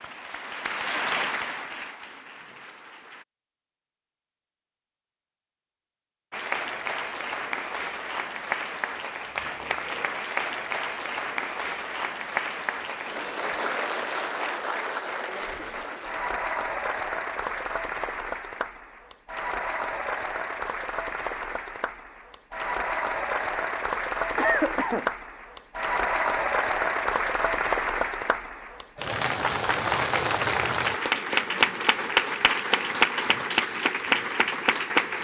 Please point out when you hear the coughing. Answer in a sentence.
The coughing can be heard from 24.4 to 25.1 s.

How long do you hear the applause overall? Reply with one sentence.
The applause can be heard for 32 seconds in total.